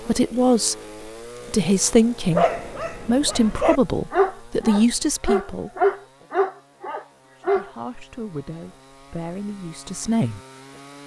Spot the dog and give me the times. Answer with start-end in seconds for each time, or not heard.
2.3-7.7.